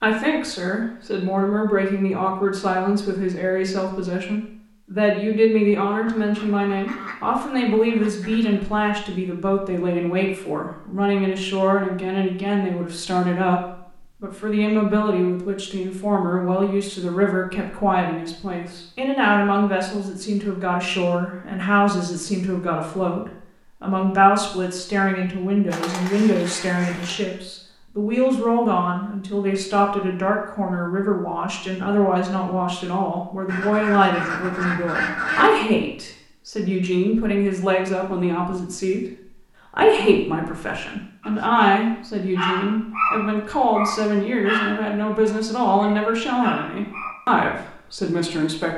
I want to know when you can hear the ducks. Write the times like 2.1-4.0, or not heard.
6.0-8.7, 25.7-27.2, 33.5-35.5.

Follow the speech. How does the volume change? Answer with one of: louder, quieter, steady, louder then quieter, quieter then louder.
steady.